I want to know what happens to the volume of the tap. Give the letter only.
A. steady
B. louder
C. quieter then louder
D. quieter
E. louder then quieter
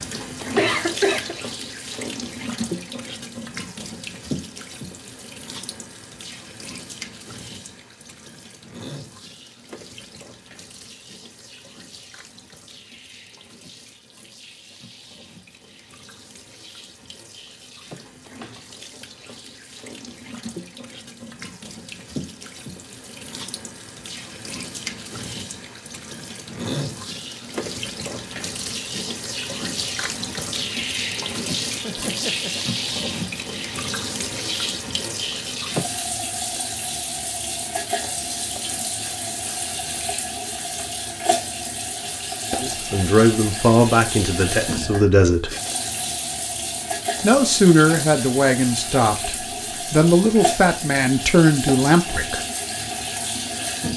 C.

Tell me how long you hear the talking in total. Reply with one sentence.
You can hear the talking for 8 seconds altogether.